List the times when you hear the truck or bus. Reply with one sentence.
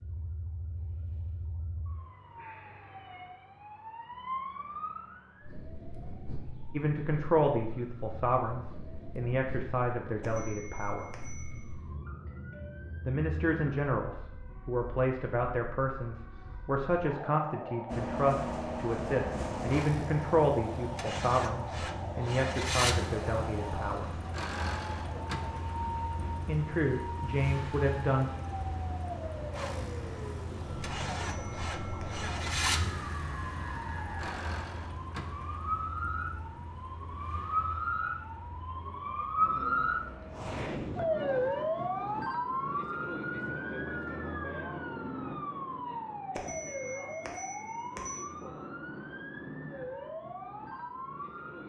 The truck or bus can be heard from 17.9 to 40.6 s.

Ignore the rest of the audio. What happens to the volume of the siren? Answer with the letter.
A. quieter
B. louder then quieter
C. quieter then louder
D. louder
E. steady
D.